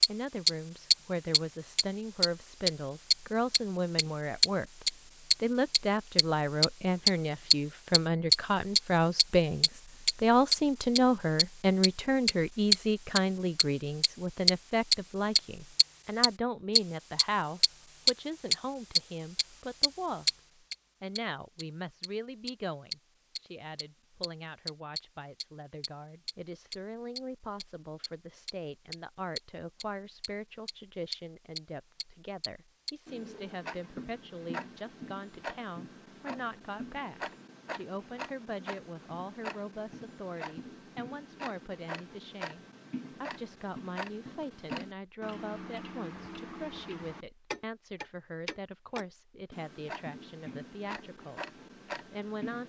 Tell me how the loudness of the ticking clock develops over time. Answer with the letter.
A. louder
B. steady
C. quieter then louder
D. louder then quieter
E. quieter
E.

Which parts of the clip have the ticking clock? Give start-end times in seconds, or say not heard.
0.0-52.6.